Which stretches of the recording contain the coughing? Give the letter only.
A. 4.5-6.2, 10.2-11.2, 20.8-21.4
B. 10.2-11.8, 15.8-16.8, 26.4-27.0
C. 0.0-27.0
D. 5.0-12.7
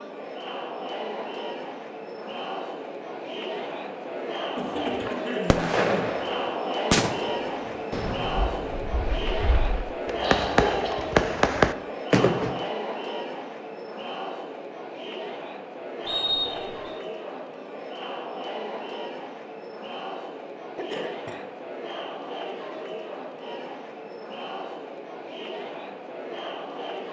A.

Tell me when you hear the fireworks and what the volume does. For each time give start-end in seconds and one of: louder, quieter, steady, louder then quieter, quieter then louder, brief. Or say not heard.
5.0-12.7 quieter then louder.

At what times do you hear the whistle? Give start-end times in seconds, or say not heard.
16.1-16.9.